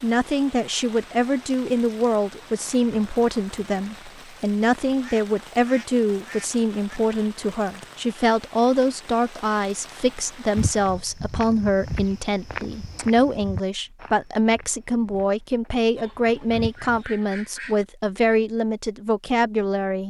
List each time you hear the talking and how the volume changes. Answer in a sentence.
The talking can be heard from 0.0 to 20.0 s, at a steady volume.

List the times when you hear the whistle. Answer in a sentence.
You can't hear the whistle here.